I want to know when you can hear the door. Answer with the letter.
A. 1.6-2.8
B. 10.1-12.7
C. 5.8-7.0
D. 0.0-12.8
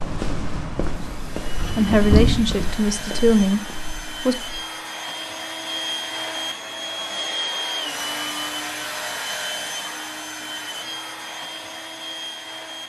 A.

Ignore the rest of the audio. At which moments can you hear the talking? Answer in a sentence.
The talking can be heard from 1.8 to 4.3 s.